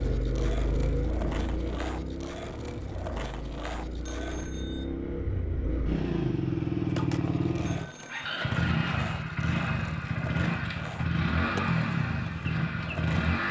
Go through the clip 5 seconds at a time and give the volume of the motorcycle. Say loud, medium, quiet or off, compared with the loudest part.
medium, loud, loud.